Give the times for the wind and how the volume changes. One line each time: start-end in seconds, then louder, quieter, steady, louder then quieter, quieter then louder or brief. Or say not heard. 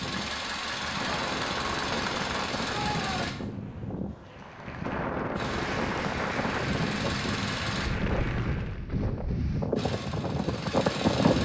0.0-11.3 louder.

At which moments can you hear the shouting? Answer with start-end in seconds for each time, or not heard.
2.6-3.4.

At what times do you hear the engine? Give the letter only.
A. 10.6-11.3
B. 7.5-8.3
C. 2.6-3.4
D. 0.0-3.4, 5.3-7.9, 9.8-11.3
D.